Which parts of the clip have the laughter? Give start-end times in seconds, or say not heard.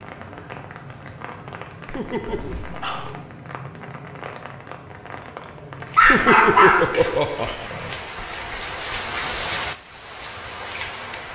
1.9-2.5, 6.0-7.7.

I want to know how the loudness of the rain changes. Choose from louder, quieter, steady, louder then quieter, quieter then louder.
louder.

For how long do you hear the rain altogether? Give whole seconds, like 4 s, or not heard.
11 s.